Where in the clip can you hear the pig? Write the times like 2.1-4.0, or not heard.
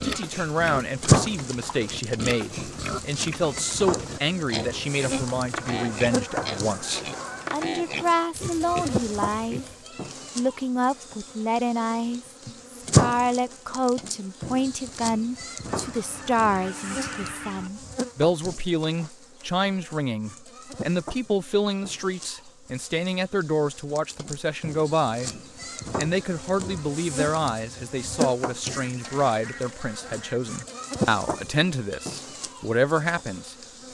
0.0-9.8.